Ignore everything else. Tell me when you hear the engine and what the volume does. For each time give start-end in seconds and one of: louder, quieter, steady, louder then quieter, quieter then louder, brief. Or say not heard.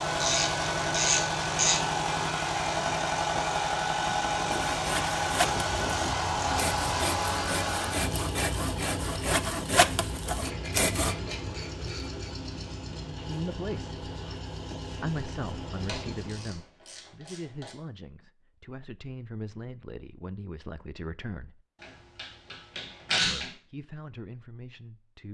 0.0-16.6 quieter.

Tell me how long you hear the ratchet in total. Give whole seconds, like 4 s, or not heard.
9 s.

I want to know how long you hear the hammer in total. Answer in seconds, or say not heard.
not heard.